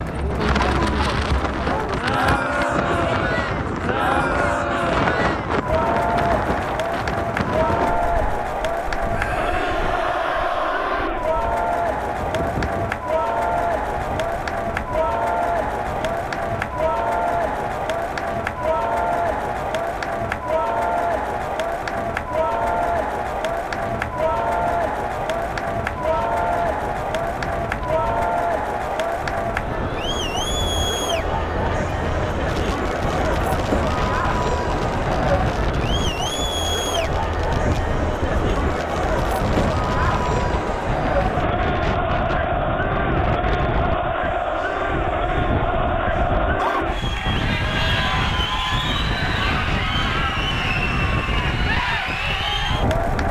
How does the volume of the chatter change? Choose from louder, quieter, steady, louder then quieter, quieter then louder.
steady.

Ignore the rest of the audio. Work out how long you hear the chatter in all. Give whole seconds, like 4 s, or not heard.
53 s.